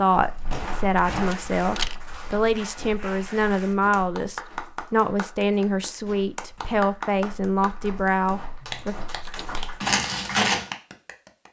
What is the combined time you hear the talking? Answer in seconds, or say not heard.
9 s.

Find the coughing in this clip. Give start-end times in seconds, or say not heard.
not heard.